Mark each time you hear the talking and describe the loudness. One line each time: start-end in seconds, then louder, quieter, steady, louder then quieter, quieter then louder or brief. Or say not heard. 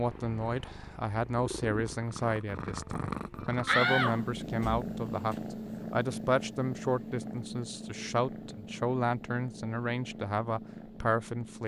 0.0-11.6 steady.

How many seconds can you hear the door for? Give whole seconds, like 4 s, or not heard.
2 s.